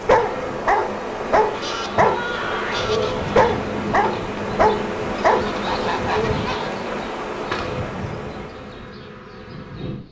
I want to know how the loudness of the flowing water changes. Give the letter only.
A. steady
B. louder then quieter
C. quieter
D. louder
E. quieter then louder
A.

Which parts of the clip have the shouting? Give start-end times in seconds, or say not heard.
2.0-2.9.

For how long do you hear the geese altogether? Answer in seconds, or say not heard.
3 s.